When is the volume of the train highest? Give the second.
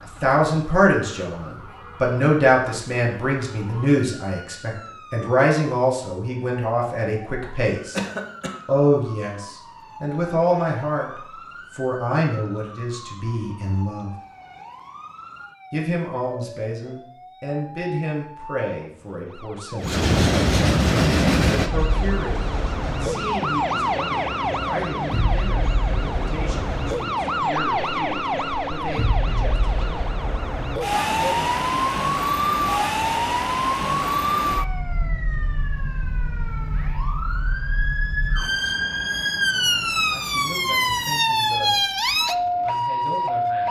21 s.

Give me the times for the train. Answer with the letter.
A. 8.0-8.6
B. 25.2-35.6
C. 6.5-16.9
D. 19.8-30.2
D.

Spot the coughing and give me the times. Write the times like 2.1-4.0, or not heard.
8.0-8.6.